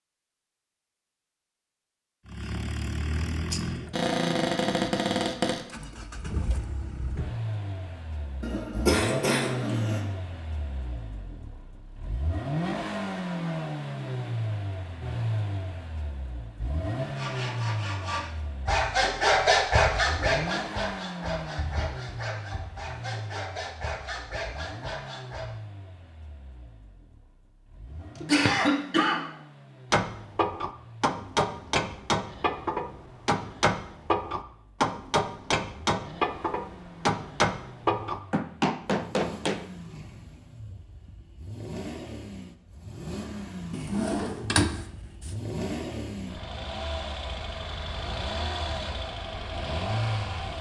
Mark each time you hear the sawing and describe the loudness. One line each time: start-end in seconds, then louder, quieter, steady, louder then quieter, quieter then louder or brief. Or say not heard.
17.0-25.5 louder then quieter.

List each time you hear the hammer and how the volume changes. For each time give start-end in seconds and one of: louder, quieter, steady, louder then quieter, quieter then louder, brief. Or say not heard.
29.9-39.6 steady.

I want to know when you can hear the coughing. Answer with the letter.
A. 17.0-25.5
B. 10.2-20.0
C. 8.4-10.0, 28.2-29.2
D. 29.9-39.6
C.